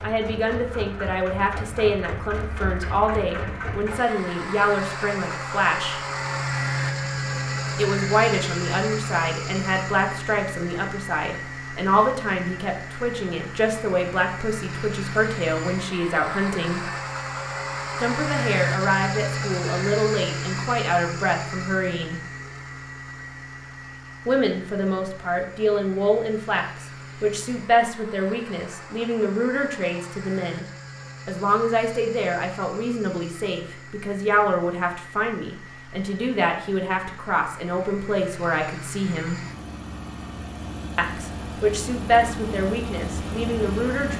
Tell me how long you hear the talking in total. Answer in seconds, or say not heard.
37 s.